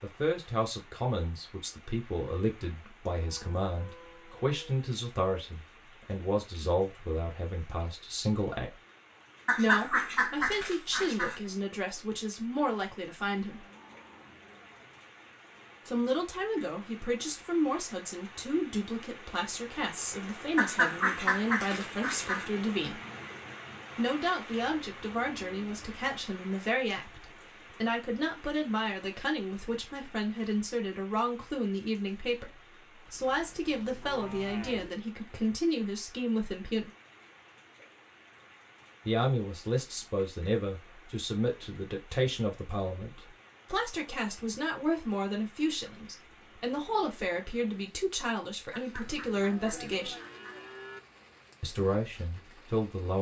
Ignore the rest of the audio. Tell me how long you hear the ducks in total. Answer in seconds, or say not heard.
6 s.